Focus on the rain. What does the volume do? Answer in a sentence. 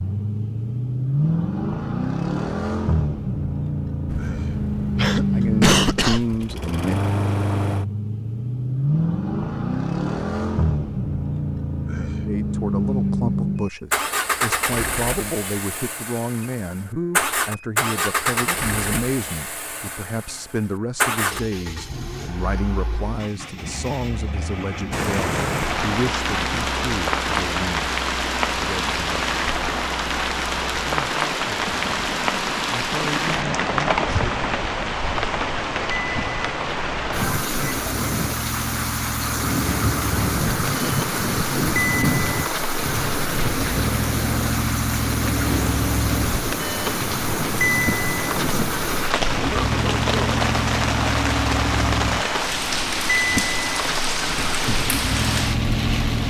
The volume of the rain stays about the same.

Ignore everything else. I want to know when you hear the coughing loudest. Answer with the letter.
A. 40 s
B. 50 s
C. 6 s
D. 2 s
C.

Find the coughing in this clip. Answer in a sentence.
The coughing can be heard from 4.0 to 6.5 s and from 49.3 to 50.1 s.